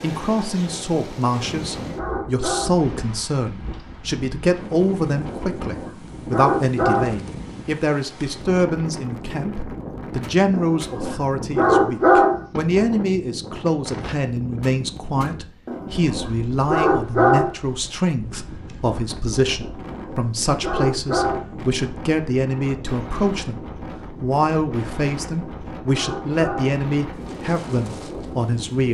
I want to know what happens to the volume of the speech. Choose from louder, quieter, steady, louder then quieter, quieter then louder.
steady.